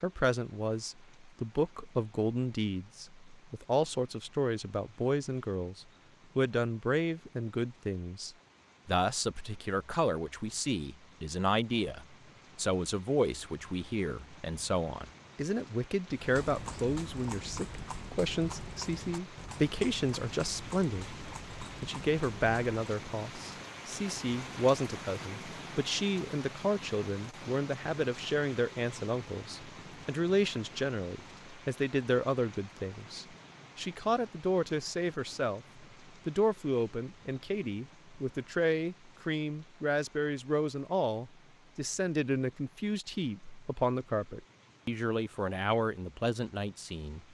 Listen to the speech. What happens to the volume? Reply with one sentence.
The volume of the speech stays about the same.